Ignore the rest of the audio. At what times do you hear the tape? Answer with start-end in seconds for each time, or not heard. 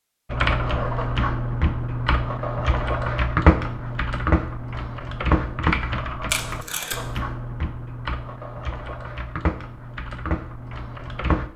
6.3-7.2.